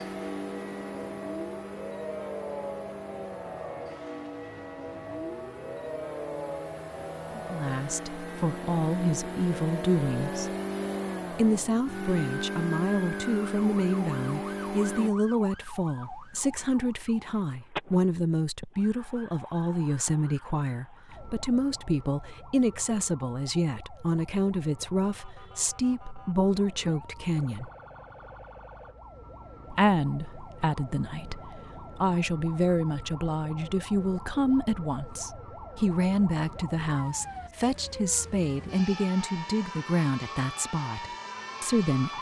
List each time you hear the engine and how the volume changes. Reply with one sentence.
You can hear the engine from 0.0 to 15.1 s, getting quieter then louder.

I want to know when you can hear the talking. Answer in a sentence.
The talking can be heard from 7.3 to 10.5 s, from 11.3 to 27.7 s and from 29.7 to 42.1 s.